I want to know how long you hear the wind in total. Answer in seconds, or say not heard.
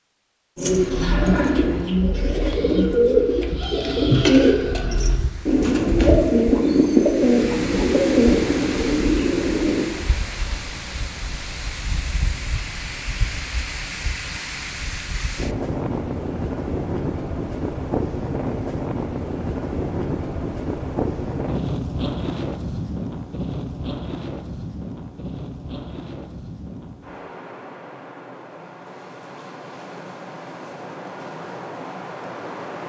28 s.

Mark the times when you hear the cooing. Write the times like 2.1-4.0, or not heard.
0.6-9.8.